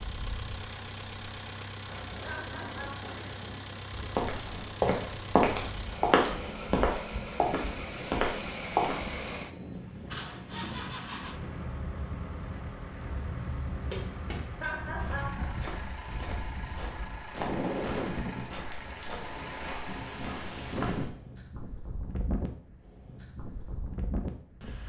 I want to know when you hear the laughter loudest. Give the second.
15 s.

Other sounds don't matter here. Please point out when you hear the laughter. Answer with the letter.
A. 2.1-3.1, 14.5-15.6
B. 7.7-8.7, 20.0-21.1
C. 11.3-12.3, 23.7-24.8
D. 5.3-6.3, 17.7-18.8
A.